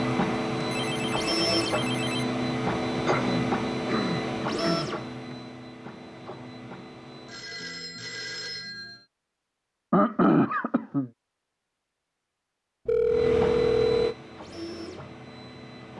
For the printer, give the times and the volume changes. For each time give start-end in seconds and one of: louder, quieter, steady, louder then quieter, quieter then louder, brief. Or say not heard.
0.0-7.5 quieter
13.1-15.9 brief.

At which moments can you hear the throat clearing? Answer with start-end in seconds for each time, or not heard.
3.0-4.9, 9.9-11.1.